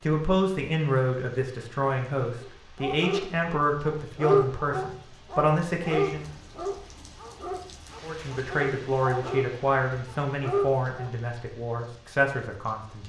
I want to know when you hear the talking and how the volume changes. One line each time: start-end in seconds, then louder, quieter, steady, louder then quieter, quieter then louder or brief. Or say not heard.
0.0-6.2 steady
8.0-13.0 quieter then louder.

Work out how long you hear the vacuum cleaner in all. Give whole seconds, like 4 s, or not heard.
not heard.